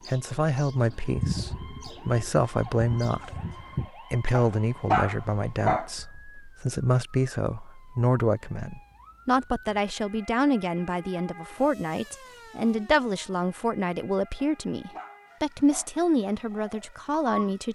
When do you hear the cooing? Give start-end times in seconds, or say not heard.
0.0-3.9, 16.3-17.5.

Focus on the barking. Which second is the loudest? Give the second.
5 s.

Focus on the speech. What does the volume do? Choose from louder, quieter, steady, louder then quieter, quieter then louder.
steady.